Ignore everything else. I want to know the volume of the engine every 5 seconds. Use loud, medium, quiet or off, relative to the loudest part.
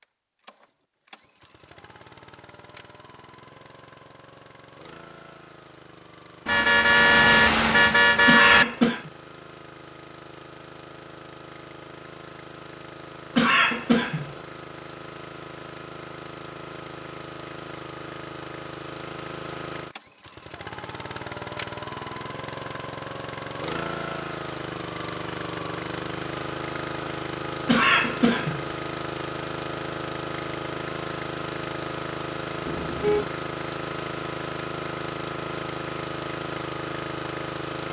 quiet, quiet, medium, medium, loud, loud, loud, loud.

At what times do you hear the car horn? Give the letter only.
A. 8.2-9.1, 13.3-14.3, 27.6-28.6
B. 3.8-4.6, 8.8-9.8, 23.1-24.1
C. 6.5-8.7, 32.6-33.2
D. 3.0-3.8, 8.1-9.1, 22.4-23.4
C.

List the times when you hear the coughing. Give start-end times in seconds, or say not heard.
8.2-9.1, 13.3-14.3, 27.6-28.6.